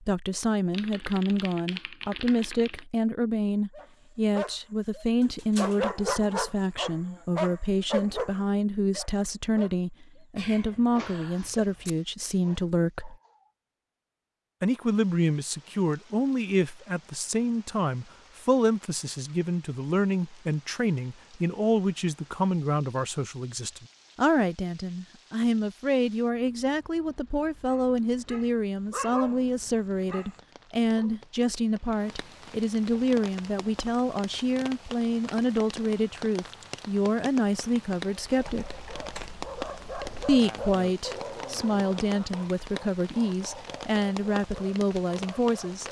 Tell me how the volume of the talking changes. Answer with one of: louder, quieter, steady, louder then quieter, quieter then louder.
steady.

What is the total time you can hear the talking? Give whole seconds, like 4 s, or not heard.
43 s.